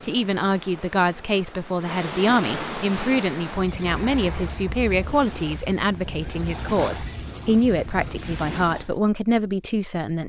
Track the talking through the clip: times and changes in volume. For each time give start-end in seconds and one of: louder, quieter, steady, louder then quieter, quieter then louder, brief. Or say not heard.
0.0-10.2 steady.